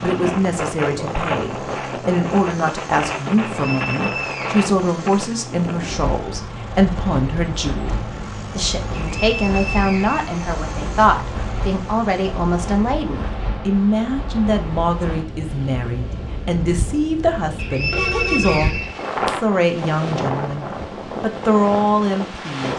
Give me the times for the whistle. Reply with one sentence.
The whistle can be heard from 3.5 to 4.7 s, from 8.9 to 10.3 s and from 17.6 to 19.1 s.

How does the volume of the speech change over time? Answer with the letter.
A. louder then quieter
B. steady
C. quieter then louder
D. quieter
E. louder
B.